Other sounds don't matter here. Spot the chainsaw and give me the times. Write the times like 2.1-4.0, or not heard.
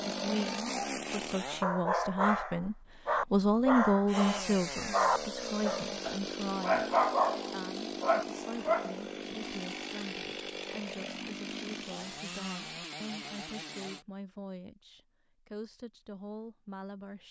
0.0-1.6, 4.0-14.1.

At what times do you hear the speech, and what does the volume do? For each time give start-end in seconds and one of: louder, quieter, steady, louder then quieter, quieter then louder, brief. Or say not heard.
0.1-17.2 quieter.